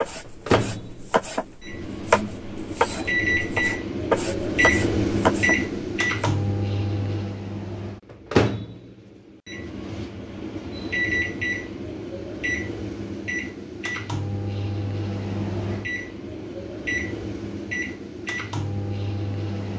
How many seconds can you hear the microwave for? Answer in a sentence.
The microwave can be heard for 20 seconds in total.